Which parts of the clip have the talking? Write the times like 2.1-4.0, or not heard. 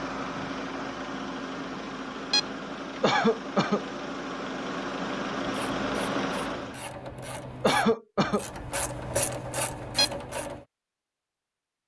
not heard.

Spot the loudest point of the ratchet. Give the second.
9 s.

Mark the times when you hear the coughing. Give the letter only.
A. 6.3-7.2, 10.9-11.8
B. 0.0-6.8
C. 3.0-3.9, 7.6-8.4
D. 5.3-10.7
C.